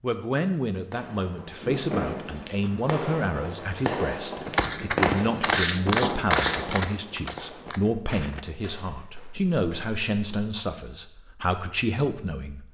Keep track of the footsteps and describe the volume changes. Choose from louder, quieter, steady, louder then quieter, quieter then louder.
quieter.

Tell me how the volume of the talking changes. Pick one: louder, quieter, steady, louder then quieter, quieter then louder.
steady.